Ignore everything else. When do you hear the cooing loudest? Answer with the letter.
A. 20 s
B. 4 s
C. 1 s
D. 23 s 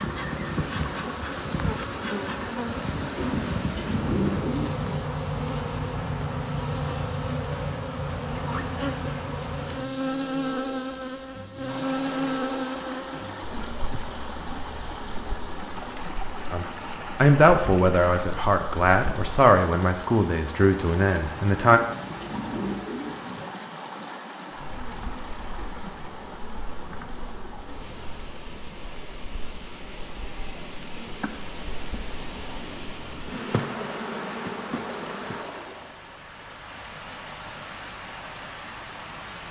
B.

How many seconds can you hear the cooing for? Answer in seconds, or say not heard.
4 s.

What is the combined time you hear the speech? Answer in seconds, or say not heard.
5 s.